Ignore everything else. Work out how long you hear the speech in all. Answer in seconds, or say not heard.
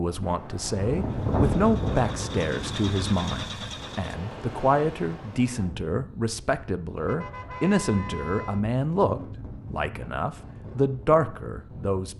12 s.